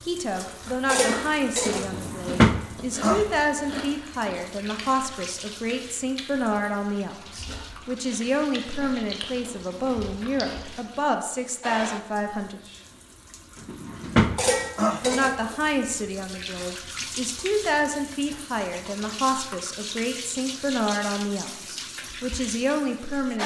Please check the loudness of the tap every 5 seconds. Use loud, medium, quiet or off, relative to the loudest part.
loud, quiet, loud, medium, medium.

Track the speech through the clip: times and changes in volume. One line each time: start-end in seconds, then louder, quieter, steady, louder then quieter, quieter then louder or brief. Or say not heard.
0.0-12.6 steady
15.0-23.4 steady.